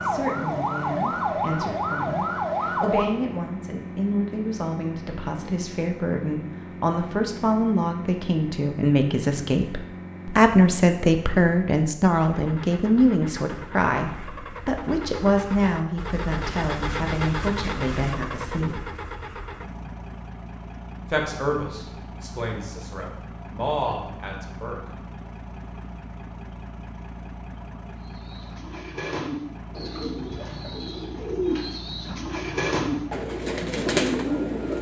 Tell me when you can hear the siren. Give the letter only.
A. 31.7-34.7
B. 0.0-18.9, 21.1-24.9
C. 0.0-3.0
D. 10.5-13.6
C.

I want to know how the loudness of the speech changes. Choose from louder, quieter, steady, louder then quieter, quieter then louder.
louder then quieter.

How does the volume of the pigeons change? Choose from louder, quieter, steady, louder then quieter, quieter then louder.
louder.